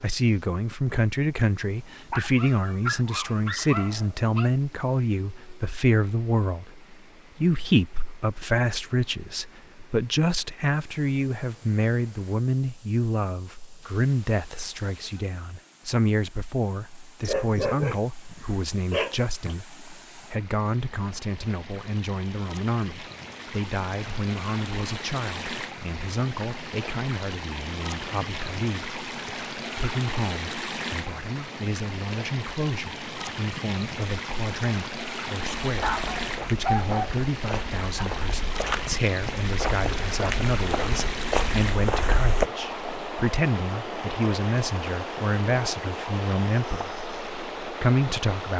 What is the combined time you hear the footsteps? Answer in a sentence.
The footsteps can be heard for 7 seconds in total.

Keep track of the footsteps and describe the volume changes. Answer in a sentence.
The loudness of the footsteps goes up.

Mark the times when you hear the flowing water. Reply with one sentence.
You can hear the flowing water from 0.0 to 48.5 s.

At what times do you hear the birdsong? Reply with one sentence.
The birdsong can't be heard in this clip.